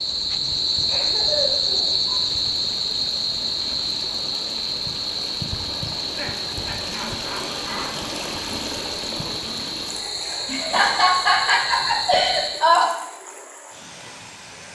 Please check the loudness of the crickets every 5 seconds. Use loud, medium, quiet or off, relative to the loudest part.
loud, medium, medium.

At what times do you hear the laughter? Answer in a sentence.
The laughter can be heard from 0.8 to 1.9 s, from 5.8 to 7.8 s and from 10.4 to 12.8 s.